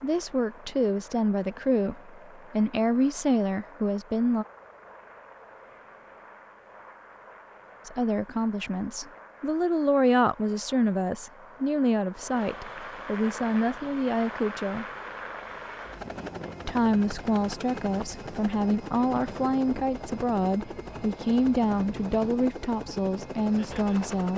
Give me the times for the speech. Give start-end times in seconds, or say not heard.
0.0-4.5, 7.8-14.8, 16.6-24.3.